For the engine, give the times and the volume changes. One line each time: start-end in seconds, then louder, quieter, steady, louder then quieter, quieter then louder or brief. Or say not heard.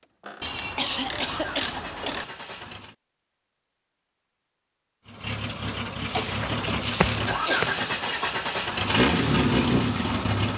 0.0-3.0 brief
5.0-10.5 louder.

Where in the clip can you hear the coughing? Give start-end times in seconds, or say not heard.
0.7-2.7, 6.1-7.8.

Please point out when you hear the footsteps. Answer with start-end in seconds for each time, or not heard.
6.2-7.8.